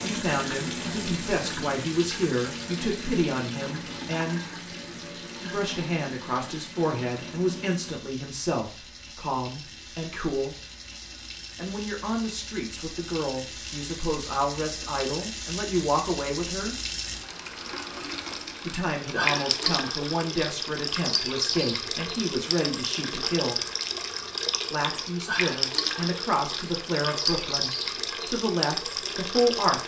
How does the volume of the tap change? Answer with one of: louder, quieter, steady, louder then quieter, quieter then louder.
quieter then louder.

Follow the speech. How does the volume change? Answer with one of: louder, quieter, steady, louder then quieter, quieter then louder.
steady.